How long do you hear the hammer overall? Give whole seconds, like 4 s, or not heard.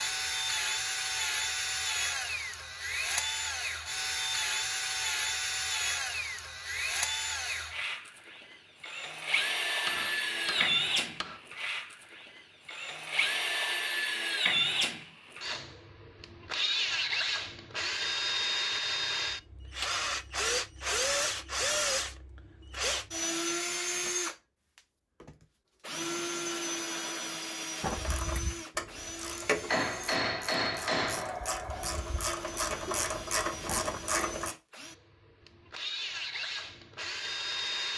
3 s.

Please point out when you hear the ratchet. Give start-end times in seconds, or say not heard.
27.8-34.5.